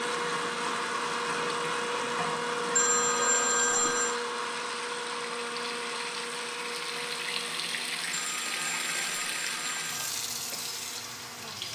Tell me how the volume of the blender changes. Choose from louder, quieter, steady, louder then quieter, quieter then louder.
quieter.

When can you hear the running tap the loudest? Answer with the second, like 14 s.
9 s.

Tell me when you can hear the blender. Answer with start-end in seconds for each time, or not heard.
0.0-11.6.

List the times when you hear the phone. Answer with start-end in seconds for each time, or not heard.
2.8-4.2, 8.1-10.1.